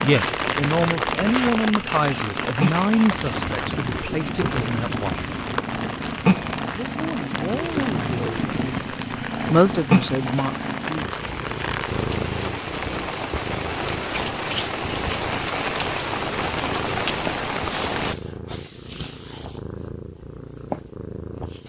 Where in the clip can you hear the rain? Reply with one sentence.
The rain can be heard from 0.0 to 18.1 s.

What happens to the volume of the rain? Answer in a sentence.
The loudness of the rain goes down, then up.